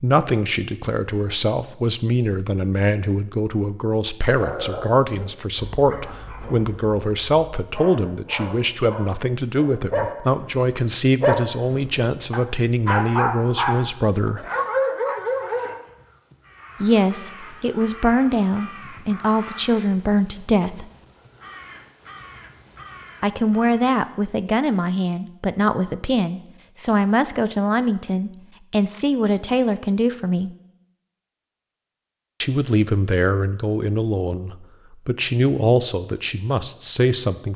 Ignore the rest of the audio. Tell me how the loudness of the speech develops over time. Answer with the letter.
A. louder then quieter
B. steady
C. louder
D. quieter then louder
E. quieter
B.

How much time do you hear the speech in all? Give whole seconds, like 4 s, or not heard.
31 s.